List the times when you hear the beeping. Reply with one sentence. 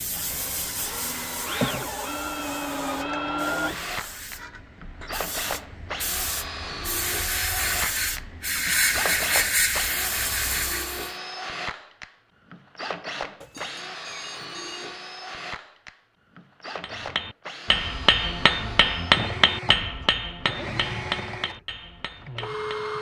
The beeping can be heard from 13.4 to 14.9 s.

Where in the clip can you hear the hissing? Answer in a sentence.
You can hear the hissing from 0.0 to 11.2 s.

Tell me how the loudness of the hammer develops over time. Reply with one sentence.
The loudness of the hammer goes down.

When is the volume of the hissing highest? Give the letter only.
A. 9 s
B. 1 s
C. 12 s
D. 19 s
A.